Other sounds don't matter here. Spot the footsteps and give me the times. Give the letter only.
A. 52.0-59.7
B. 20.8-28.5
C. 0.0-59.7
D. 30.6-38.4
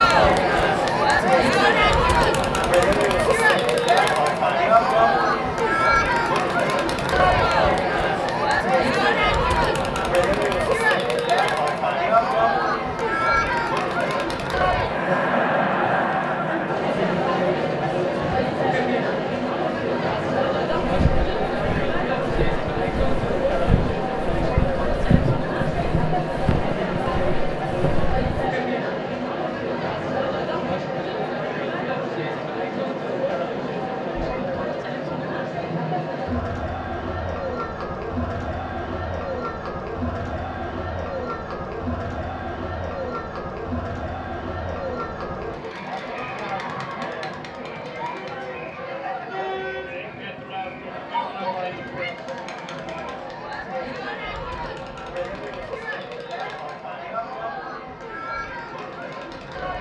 B.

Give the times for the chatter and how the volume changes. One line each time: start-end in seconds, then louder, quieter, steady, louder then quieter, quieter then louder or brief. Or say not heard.
0.0-59.7 quieter.